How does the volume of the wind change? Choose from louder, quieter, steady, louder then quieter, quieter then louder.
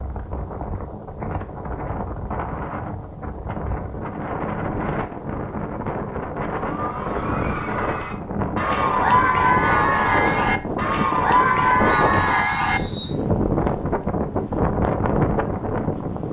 louder.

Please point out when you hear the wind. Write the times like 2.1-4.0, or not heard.
0.0-16.2.